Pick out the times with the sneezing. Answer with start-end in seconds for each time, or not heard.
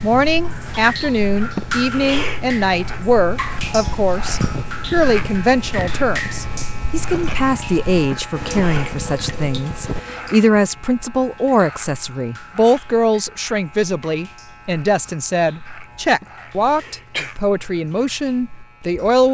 1.6-2.5, 8.1-8.9, 16.2-17.3.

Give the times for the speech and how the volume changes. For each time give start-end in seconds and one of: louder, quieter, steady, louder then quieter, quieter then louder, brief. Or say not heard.
0.0-19.2 steady.